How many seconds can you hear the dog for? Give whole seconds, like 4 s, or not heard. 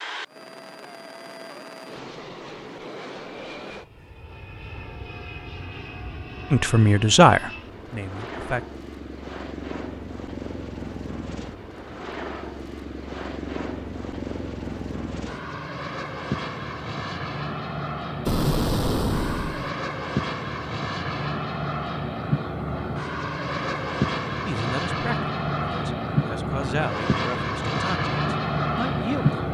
not heard.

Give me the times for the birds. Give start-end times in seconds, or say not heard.
not heard.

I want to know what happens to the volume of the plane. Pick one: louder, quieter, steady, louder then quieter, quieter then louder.
louder.